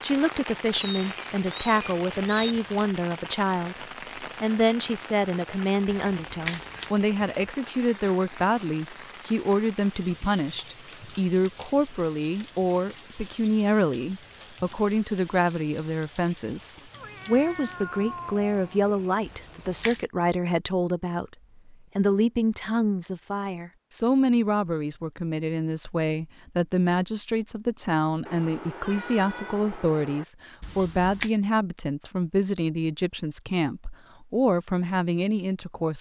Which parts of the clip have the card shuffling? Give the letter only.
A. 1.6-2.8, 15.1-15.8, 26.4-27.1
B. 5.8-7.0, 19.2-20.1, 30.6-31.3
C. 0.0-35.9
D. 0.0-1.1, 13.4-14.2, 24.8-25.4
B.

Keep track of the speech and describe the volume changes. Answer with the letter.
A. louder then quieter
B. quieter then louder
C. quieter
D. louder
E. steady
E.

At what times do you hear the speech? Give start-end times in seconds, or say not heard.
0.0-35.9.